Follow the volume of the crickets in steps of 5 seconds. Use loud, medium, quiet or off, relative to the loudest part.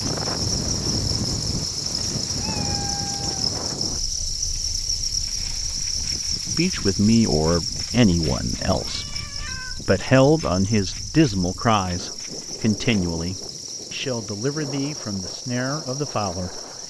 loud, loud, medium, medium.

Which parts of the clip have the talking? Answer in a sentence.
The talking can be heard from 6.5 to 16.6 s.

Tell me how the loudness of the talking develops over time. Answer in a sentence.
The loudness of the talking goes down.